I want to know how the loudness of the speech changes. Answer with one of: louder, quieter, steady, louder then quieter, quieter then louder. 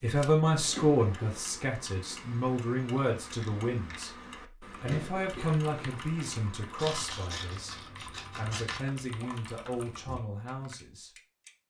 quieter.